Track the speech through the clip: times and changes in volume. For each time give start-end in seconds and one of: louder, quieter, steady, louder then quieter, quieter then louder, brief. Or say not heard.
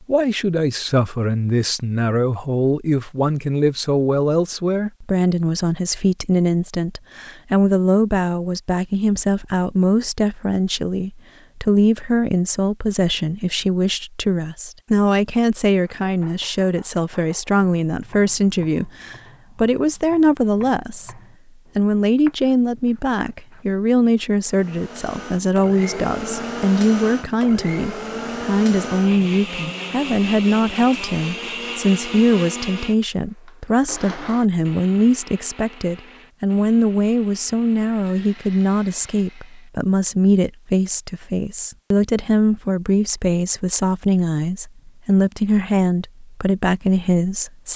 0.1-47.7 steady.